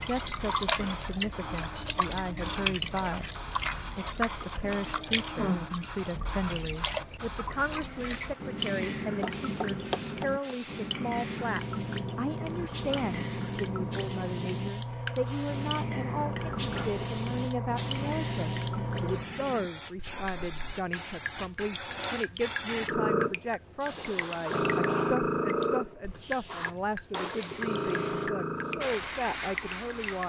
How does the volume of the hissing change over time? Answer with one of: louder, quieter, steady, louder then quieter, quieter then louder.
louder.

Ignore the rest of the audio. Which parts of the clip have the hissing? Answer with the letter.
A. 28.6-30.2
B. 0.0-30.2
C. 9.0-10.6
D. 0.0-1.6
B.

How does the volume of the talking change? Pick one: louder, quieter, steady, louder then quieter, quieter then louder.
steady.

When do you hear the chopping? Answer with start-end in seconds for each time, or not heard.
9.0-10.6.